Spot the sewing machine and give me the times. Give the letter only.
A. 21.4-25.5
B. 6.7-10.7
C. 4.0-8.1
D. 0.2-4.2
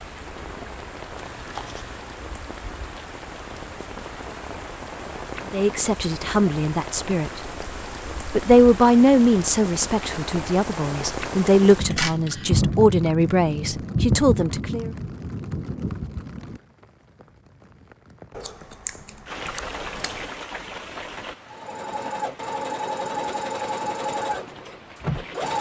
A.